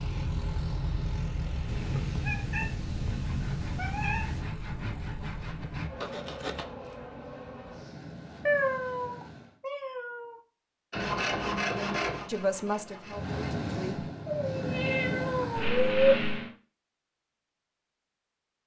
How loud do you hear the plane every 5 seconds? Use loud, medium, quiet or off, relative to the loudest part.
medium, quiet, loud, loud.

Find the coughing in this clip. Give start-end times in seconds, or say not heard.
not heard.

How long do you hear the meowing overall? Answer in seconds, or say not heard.
7 s.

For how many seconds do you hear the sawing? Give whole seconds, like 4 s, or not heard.
6 s.